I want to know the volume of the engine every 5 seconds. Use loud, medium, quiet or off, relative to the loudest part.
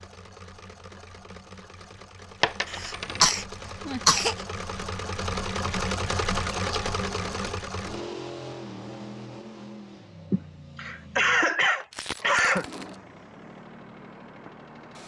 medium, loud, quiet.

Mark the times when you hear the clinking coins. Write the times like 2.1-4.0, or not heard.
2.4-3.2, 6.6-7.6, 11.9-12.9.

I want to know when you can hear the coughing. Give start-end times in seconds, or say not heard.
2.8-4.3, 10.3-12.7.